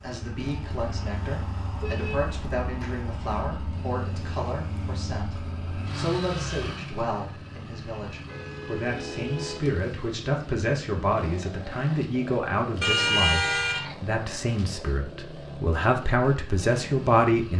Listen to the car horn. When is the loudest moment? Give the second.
13 s.